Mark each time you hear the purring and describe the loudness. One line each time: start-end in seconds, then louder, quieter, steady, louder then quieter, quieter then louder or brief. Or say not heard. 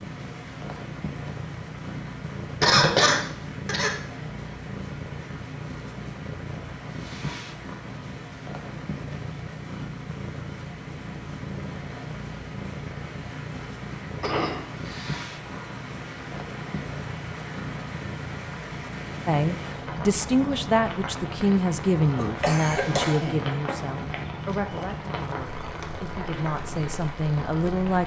0.0-28.0 steady.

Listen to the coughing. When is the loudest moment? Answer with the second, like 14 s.
3 s.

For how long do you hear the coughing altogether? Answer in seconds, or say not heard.
4 s.